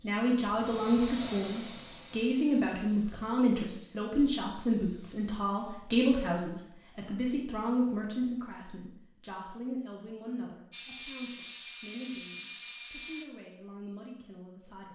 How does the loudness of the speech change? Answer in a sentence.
The volume of the speech goes down.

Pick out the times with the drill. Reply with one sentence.
You can hear the drill from 10.7 to 13.2 s.